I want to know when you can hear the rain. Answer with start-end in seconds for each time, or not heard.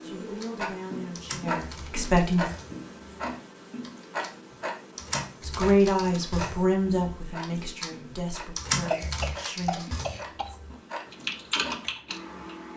not heard.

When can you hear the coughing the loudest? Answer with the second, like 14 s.
9 s.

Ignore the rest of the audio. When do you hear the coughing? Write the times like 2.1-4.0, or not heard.
8.9-10.6.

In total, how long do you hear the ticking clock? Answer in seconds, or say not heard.
13 s.